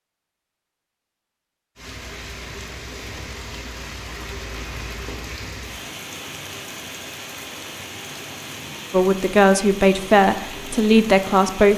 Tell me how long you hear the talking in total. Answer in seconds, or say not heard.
3 s.